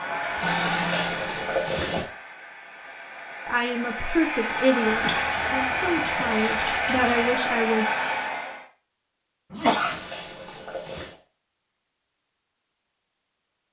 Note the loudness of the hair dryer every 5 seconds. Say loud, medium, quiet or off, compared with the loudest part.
medium, loud, off.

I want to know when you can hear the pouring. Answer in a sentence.
The pouring can be heard from 0.4 to 2.0 s, from 4.8 to 7.3 s and from 9.6 to 11.2 s.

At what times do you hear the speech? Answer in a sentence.
The speech can be heard from 3.5 to 7.8 s.